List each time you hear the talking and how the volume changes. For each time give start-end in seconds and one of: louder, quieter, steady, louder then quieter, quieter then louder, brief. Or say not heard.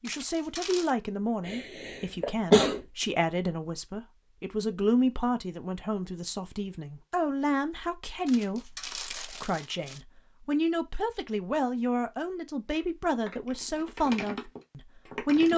0.0-15.5 steady.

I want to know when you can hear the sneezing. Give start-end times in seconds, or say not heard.
1.4-2.8.